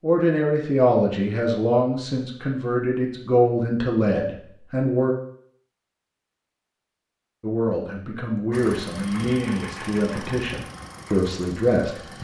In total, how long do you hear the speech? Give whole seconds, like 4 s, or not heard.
10 s.